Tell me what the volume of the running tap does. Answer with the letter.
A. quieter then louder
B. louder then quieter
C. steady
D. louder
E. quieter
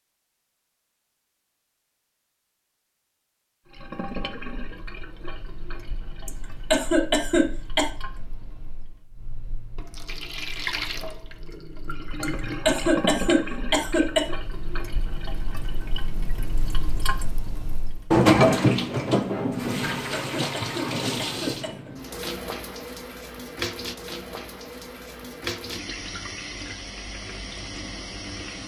B.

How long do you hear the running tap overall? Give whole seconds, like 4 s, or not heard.
25 s.